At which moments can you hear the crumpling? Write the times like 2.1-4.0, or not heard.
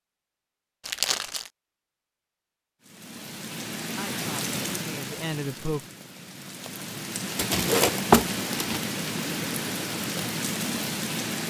0.8-1.5, 7.3-8.8.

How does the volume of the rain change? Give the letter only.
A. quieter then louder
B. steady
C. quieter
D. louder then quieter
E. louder
A.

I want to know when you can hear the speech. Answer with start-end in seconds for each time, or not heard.
4.0-5.8.